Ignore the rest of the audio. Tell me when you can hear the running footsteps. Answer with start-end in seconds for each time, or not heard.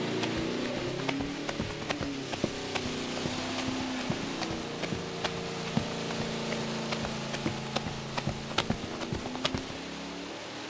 0.2-9.8.